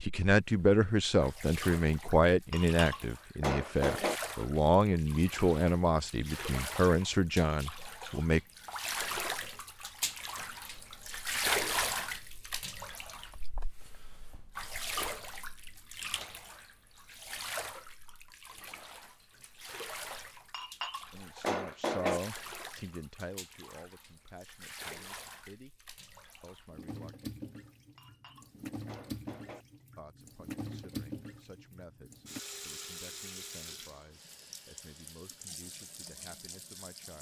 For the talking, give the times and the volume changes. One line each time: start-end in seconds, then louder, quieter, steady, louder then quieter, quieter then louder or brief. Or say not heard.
0.0-8.4 steady
21.1-25.7 quieter
26.4-27.3 brief
29.9-37.1 steady.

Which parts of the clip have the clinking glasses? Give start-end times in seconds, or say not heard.
2.5-4.2, 20.5-22.2, 27.9-29.6.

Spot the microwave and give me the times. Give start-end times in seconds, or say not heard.
not heard.